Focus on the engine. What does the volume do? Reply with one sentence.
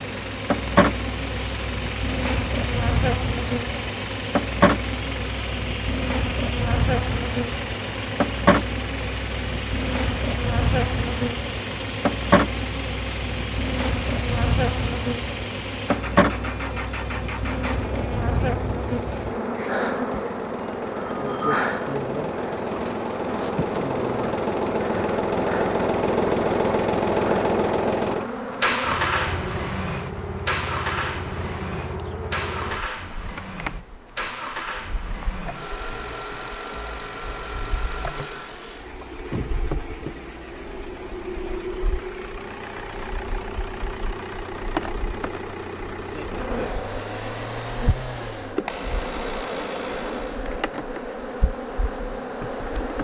The loudness of the engine goes up, then down.